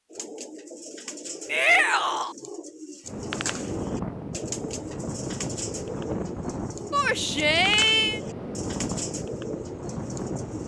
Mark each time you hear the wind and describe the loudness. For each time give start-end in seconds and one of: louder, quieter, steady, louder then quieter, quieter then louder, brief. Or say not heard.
3.0-10.6 steady.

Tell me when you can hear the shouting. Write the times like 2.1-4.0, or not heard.
1.4-2.4, 6.9-8.2.